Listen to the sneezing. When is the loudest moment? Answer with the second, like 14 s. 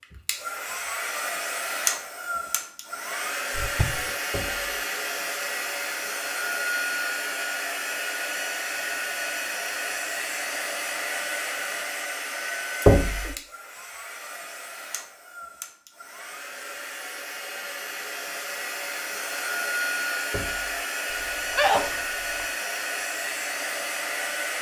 22 s.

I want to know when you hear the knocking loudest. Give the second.
13 s.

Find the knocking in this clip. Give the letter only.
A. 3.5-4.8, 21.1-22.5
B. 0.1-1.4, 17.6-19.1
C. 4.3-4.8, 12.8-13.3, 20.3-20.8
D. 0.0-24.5
C.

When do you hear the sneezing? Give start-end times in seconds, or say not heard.
3.5-4.8, 21.1-22.5.